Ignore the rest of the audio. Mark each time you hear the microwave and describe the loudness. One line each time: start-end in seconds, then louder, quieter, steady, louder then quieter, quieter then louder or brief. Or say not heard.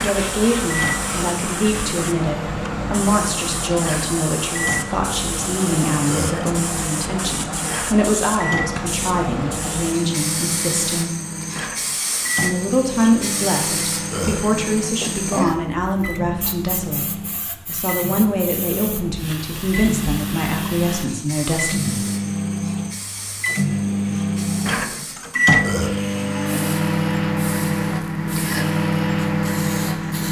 0.0-30.2 louder.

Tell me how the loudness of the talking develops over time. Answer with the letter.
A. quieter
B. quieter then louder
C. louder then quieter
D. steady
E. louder
D.